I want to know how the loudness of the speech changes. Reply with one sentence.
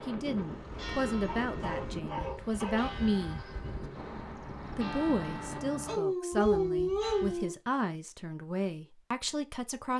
The volume of the speech stays about the same.